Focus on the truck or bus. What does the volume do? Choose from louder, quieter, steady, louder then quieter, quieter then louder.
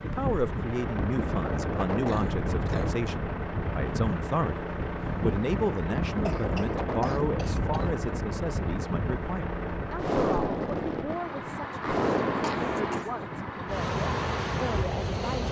steady.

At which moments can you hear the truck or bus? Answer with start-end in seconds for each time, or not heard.
0.0-15.4.